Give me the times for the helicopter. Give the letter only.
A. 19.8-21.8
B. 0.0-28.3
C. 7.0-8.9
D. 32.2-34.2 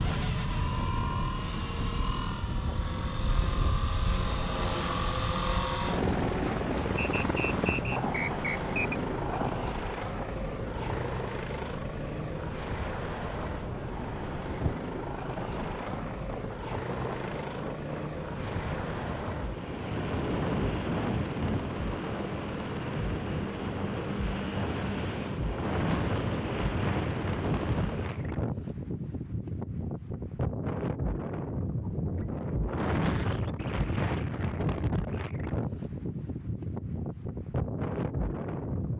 B.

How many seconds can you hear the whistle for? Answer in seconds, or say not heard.
2 s.